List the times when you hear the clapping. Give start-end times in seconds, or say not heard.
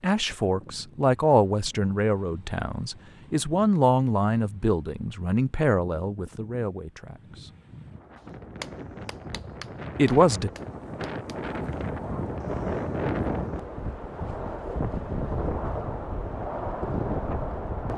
8.6-11.8.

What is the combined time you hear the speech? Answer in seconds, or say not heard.
8 s.